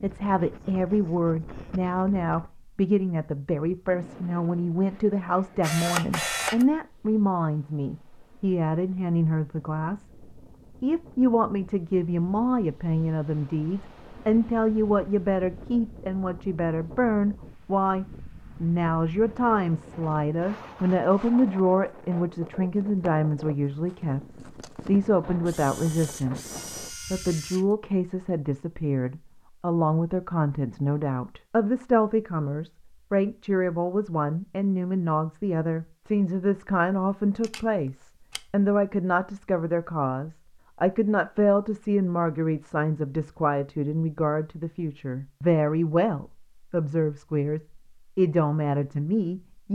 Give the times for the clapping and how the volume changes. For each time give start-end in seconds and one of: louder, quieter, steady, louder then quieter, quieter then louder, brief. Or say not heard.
not heard.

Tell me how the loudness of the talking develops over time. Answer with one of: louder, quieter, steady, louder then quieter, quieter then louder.
steady.